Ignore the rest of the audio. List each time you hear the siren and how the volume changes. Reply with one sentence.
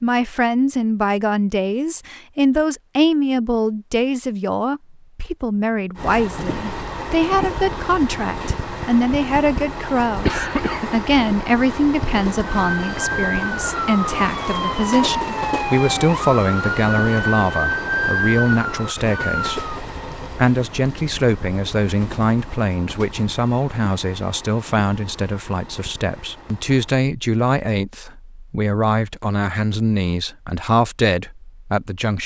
You can hear the siren from 12.7 to 19.8 s, at a steady volume.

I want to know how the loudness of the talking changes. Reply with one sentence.
The loudness of the talking stays about the same.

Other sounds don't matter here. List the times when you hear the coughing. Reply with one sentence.
The coughing can be heard from 10.2 to 10.9 s.